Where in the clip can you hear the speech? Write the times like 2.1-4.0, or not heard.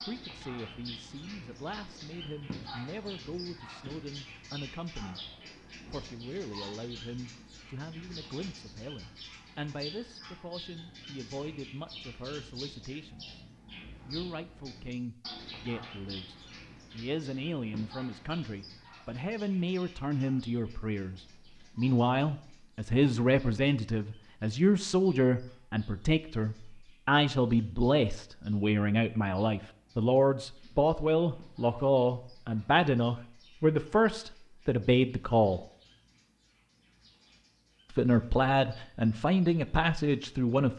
0.1-5.2, 5.9-13.4, 14.1-35.6, 37.9-40.7.